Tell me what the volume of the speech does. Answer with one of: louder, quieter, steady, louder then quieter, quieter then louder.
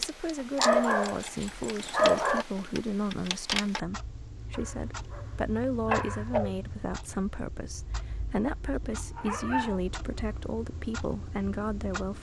steady.